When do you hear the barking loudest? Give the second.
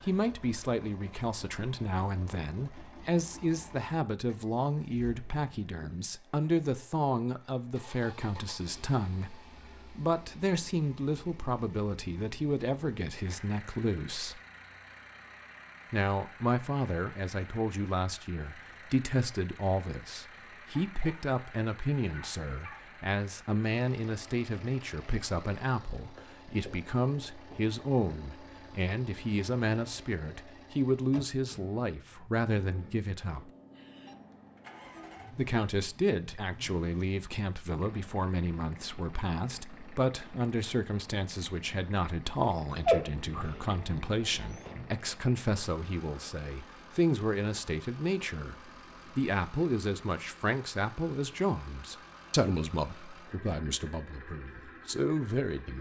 43 s.